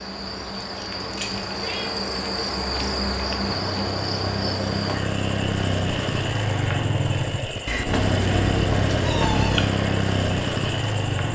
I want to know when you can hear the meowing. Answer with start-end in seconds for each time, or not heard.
1.1-1.9, 7.7-9.7.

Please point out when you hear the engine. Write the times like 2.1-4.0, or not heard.
3.4-11.3.